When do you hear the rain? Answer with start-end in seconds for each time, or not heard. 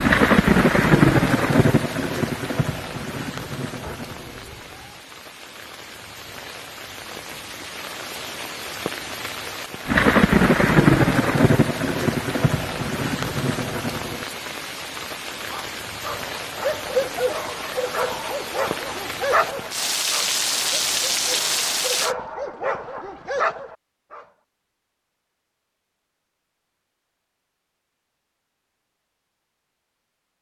0.0-22.1.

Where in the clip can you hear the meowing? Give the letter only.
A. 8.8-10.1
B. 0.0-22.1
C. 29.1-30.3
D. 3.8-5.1
D.